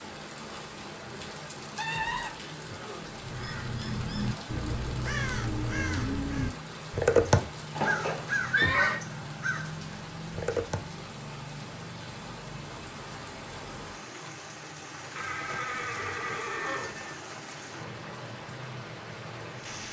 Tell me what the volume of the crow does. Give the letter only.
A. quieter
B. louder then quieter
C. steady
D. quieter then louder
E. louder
B.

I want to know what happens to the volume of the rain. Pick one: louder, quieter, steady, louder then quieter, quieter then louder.
steady.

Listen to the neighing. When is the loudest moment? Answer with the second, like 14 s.
9 s.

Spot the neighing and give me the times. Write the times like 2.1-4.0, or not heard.
1.8-3.0, 7.8-9.0, 15.2-17.1.